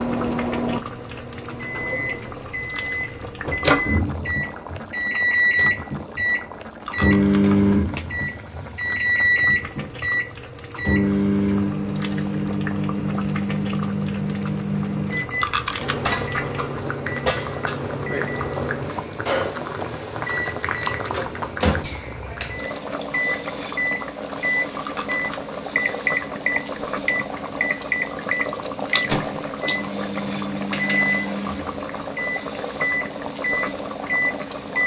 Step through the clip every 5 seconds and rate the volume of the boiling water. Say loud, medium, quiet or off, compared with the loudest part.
medium, medium, medium, loud, loud, loud, loud.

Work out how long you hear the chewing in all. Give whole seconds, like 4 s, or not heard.
2 s.